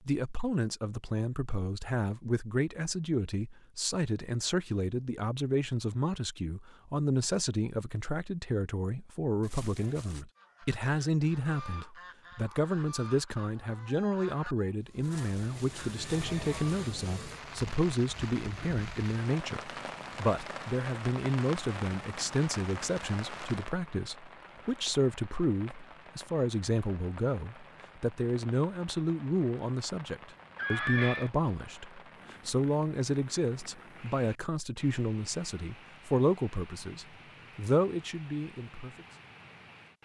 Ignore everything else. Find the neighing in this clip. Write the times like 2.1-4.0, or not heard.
9.4-10.2, 15.0-16.5, 30.6-31.3.